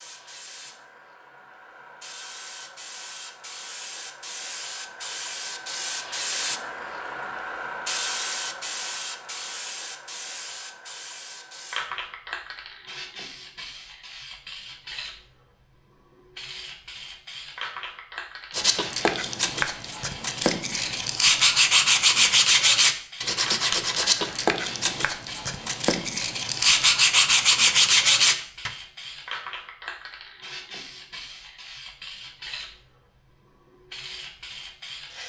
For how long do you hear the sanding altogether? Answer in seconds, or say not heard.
10 s.